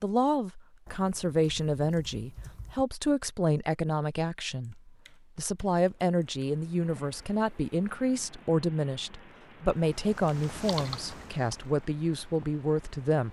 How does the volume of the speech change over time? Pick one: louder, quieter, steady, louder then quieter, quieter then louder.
steady.